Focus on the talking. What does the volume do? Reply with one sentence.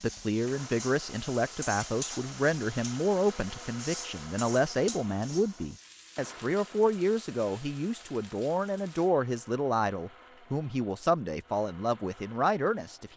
The volume of the talking stays about the same.